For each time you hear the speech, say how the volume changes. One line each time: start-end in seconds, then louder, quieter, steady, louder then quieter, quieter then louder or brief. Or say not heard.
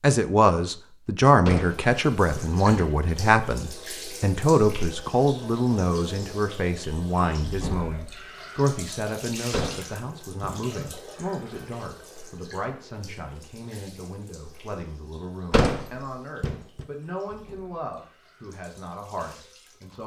0.0-20.0 quieter.